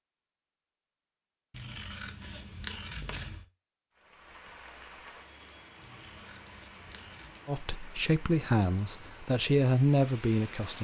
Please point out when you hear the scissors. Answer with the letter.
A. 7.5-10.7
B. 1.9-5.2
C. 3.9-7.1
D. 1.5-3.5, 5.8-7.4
D.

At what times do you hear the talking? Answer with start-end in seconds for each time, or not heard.
7.5-10.7.